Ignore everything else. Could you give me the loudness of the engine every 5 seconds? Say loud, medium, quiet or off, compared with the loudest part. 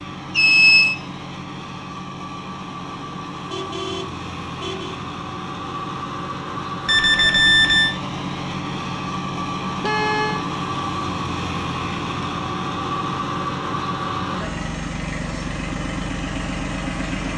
medium, loud, loud, loud.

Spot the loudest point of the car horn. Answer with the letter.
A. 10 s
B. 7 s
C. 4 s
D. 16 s
A.